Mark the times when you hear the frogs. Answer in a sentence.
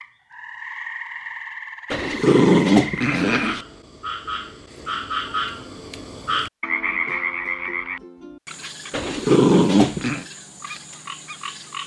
The frogs can be heard from 0.0 to 11.8 s.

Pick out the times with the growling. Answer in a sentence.
The growling can be heard from 1.9 to 3.6 s and from 8.9 to 10.2 s.